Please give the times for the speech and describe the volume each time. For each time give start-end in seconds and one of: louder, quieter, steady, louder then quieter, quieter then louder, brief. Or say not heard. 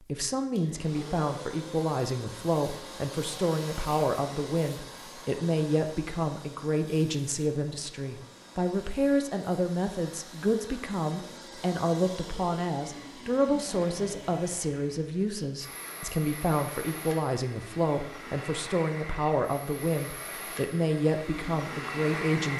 0.0-22.5 steady.